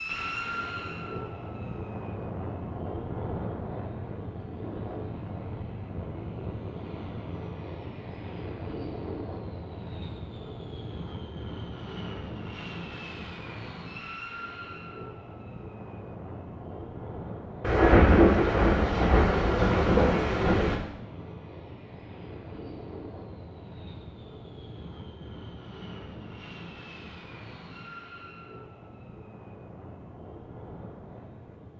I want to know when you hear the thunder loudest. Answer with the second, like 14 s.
18 s.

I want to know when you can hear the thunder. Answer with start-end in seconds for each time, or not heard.
17.6-20.8.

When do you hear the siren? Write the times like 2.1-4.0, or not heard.
not heard.